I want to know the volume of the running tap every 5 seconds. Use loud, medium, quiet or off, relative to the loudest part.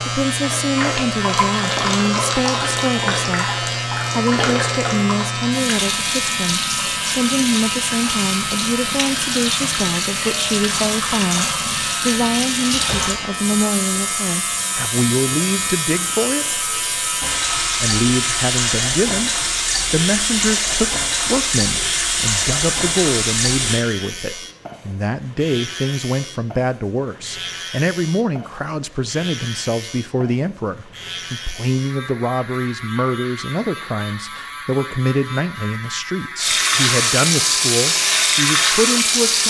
medium, medium, medium, medium, loud, off, off, loud.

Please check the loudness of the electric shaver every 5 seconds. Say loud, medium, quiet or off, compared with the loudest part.
loud, loud, loud, loud, medium, medium, medium, medium.